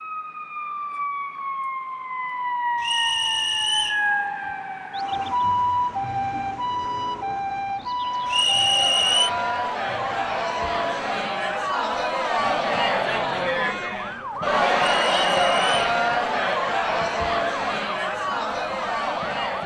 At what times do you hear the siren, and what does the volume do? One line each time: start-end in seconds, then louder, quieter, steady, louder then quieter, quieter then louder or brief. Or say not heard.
0.0-19.6 quieter.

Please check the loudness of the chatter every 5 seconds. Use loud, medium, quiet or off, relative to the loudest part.
off, medium, loud, loud.